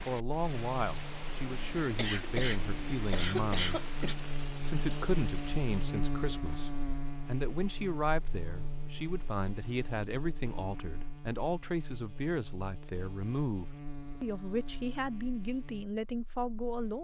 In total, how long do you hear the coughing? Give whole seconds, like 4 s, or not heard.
2 s.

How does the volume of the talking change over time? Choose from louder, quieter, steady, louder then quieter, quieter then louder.
steady.